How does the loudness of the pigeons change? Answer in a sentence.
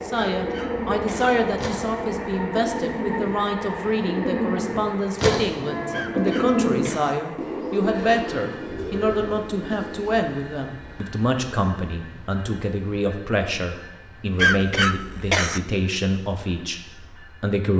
The loudness of the pigeons goes up, then down.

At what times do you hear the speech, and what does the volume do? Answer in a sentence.
You can hear the speech from 0.0 to 17.7 s, at a steady volume.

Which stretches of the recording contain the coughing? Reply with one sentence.
You can hear the coughing from 0.3 to 1.4 s, from 5.9 to 7.2 s and from 14.3 to 15.6 s.